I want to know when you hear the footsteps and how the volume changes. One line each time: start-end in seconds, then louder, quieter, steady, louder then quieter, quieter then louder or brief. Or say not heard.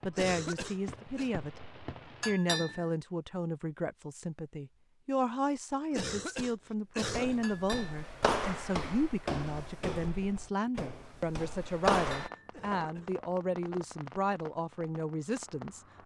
7.1-12.3 quieter then louder.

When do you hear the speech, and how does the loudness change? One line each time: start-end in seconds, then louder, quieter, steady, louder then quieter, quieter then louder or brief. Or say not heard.
0.0-1.6 brief
2.2-15.8 steady.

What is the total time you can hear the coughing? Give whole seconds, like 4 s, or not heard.
3 s.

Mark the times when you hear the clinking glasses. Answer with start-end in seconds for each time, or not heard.
2.2-2.9, 7.4-8.1, 12.0-12.5.